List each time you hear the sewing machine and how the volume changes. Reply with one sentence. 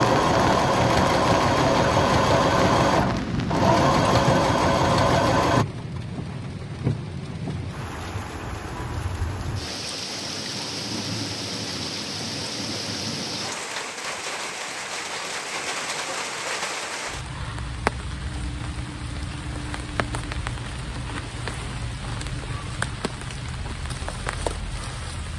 You can hear the sewing machine from 0.0 to 5.7 s, at a steady volume.